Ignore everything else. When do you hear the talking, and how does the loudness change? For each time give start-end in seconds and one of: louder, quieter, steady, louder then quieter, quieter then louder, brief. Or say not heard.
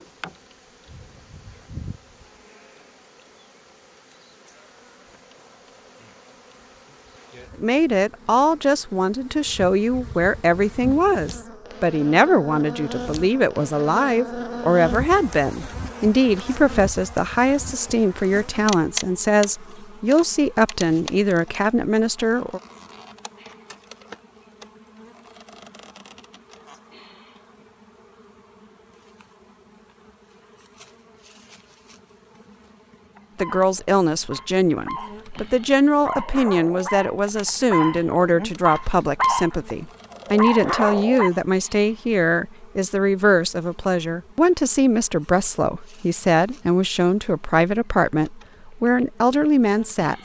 7.5-22.6 steady
33.4-50.1 steady.